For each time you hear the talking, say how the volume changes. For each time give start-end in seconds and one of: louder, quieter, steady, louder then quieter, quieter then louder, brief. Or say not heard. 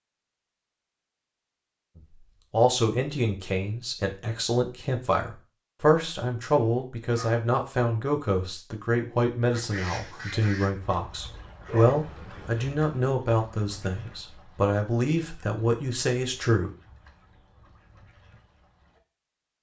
1.9-16.7 steady.